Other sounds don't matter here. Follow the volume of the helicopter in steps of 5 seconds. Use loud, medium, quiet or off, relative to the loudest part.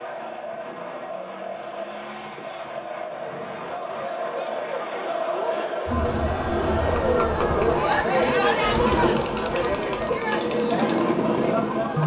off, loud, loud.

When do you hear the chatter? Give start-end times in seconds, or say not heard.
0.0-12.0.